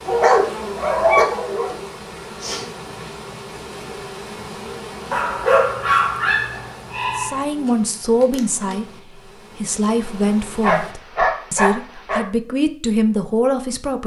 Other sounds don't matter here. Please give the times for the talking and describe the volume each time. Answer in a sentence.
You can hear the talking briefly from 7.2 to 8.8 s; and from 9.6 to 14.0 s, getting quieter then louder.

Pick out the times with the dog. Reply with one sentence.
You can hear the dog from 0.1 to 1.8 s, from 5.1 to 7.4 s and from 10.6 to 12.2 s.